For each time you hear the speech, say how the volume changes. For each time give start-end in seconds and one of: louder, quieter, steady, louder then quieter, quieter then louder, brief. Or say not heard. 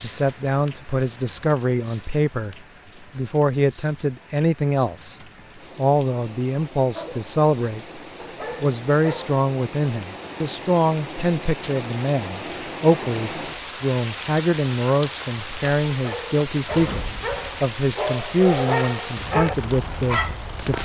0.0-2.5 brief
3.1-5.2 brief
5.8-8.0 brief
8.6-20.8 steady.